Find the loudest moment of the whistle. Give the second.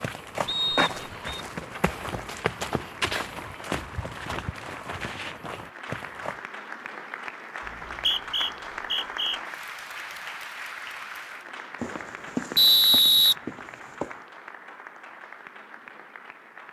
13 s.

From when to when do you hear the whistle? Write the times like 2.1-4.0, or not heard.
0.5-1.4, 7.7-9.4, 12.6-13.3.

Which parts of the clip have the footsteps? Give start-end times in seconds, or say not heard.
0.0-6.4, 11.8-14.2.